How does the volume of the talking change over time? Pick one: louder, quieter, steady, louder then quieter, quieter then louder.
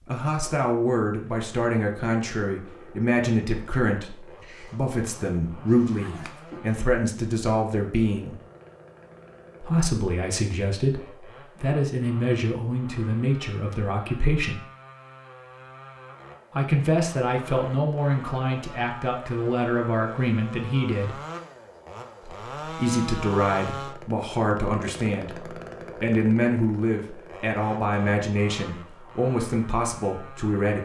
steady.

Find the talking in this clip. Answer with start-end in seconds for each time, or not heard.
0.1-8.3, 9.6-14.6, 16.5-21.1, 22.2-30.8.